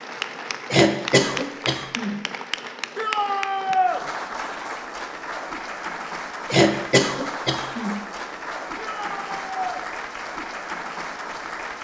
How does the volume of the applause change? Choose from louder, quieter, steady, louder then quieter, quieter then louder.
steady.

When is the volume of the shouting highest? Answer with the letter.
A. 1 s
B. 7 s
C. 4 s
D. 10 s
C.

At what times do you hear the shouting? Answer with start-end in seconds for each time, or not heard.
3.0-4.0, 8.8-9.8.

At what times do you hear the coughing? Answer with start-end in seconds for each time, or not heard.
0.7-2.2, 6.5-8.0.